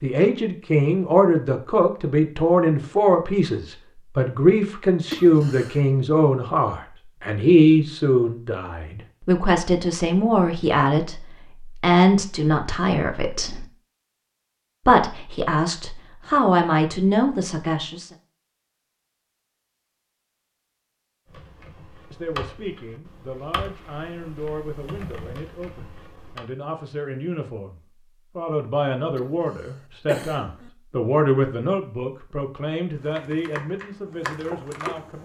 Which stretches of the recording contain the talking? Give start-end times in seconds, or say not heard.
0.0-13.7, 14.8-18.1, 22.1-35.1.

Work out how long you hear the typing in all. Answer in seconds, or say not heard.
7 s.